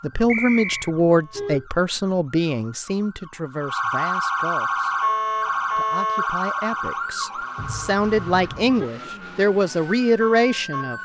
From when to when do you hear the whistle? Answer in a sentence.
The whistle can be heard from 0.2 to 0.9 s.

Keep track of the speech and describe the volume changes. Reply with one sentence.
The loudness of the speech goes down, then up.